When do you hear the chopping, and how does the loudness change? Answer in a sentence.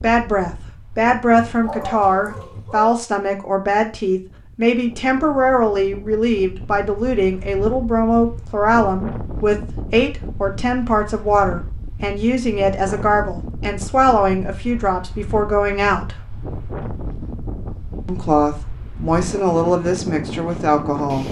You can't hear the chopping here.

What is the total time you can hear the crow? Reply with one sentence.
You can't hear the crow here.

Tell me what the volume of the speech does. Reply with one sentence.
The volume of the speech stays about the same.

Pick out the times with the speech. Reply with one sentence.
The speech can be heard from 0.0 to 16.1 s and from 18.1 to 21.2 s.